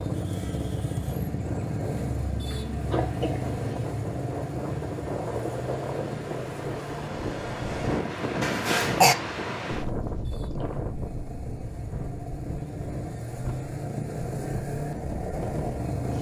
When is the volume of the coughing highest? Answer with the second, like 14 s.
9 s.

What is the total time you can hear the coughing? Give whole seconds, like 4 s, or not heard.
2 s.